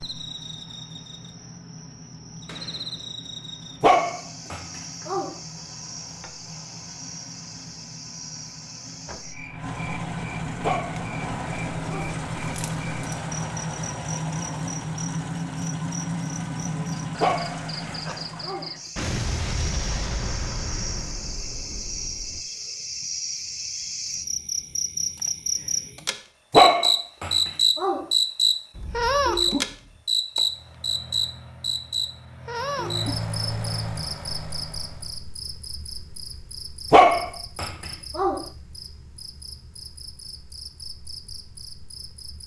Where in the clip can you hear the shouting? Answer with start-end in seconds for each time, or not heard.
not heard.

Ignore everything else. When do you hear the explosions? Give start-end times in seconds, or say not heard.
2.5-3.1, 18.9-22.4, 28.7-30.0.